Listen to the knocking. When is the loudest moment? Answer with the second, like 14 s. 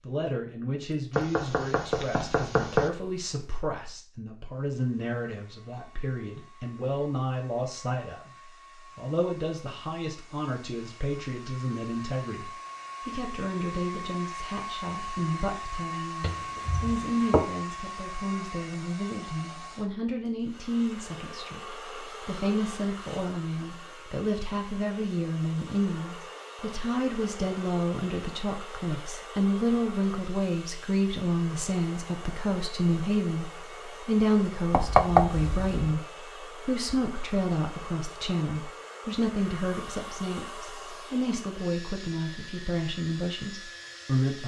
35 s.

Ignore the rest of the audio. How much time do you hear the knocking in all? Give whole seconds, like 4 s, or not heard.
4 s.